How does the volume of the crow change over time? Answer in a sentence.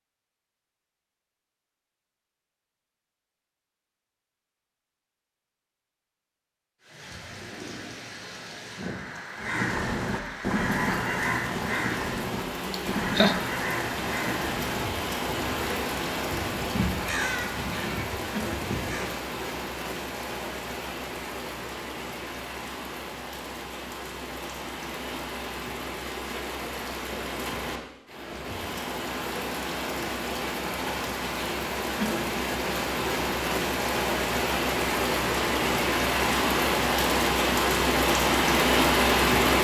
The loudness of the crow goes down.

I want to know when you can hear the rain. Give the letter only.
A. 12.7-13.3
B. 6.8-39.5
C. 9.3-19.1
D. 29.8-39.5
B.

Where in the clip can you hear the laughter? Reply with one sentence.
The laughter can be heard from 12.7 to 13.3 s.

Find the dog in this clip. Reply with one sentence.
The dog can't be heard in this clip.